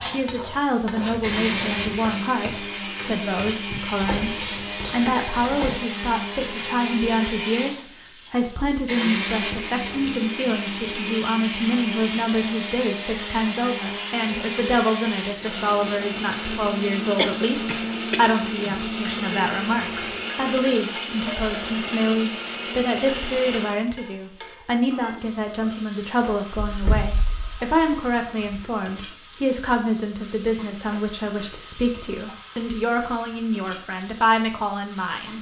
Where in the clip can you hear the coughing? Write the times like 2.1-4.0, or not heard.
17.1-18.8.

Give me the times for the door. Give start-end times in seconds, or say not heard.
3.7-5.8, 26.5-28.6.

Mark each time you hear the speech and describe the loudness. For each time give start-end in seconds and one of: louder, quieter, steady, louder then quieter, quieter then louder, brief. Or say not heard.
0.1-35.3 steady.